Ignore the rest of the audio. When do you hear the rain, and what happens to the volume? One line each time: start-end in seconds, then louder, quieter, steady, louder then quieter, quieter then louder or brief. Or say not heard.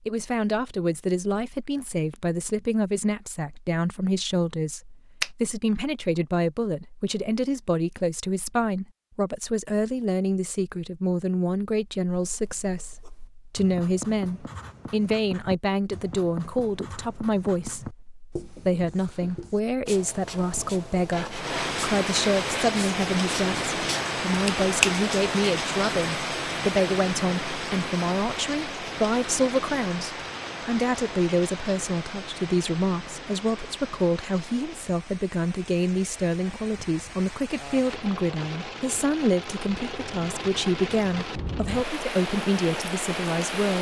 21.3-43.7 quieter then louder.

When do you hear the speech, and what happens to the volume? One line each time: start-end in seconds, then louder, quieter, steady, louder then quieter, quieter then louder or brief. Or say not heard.
0.1-43.7 steady.